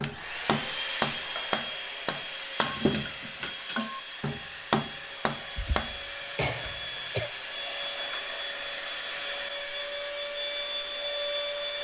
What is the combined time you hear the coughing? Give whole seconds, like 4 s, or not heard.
2 s.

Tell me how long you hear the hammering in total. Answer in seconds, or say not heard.
6 s.